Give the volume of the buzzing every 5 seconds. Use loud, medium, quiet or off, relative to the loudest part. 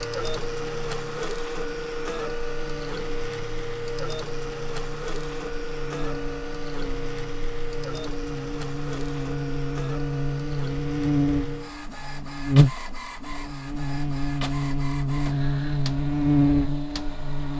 quiet, medium, loud, loud.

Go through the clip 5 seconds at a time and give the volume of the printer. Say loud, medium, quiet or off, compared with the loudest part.
loud, loud, medium, medium.